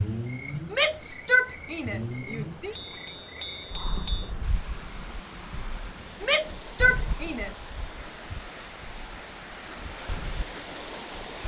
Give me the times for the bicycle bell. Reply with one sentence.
You can hear the bicycle bell from 2.8 to 4.3 s.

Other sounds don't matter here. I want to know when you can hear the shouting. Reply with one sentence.
The shouting can be heard from 0.7 to 2.8 s and from 6.2 to 7.6 s.